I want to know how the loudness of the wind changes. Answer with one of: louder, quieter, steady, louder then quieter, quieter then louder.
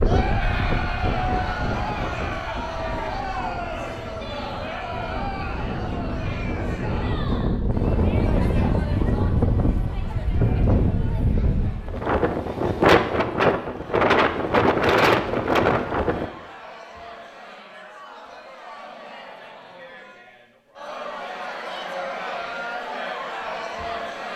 louder.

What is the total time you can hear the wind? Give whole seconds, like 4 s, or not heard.
16 s.